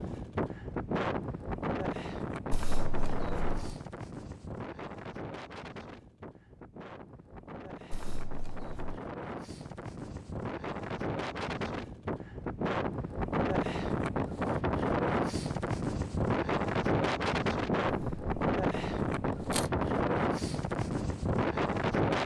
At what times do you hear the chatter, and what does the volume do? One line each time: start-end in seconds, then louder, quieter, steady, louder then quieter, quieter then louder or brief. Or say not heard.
not heard.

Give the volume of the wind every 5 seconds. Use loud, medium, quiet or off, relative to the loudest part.
medium, quiet, loud, loud, loud.